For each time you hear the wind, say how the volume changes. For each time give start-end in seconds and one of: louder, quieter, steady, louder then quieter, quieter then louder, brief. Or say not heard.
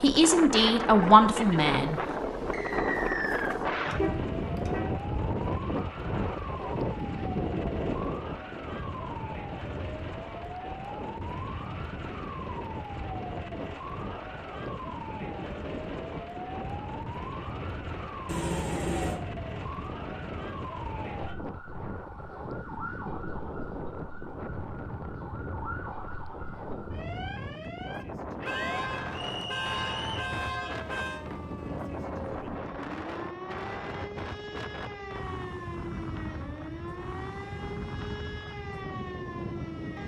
0.0-40.0 quieter.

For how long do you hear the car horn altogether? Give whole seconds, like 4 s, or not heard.
5 s.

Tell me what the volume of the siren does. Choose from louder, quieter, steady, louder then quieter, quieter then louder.
steady.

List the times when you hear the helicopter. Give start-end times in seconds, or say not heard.
not heard.